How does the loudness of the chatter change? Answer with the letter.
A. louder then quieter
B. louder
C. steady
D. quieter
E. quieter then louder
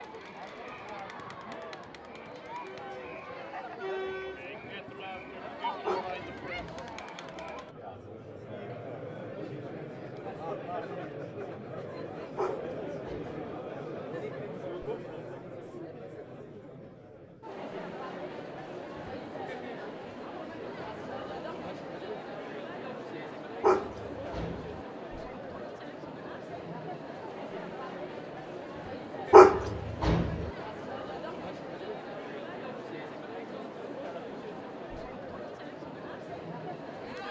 C.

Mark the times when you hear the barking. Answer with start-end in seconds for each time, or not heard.
5.8-7.0, 12.3-13.3, 23.6-24.8, 29.3-30.4.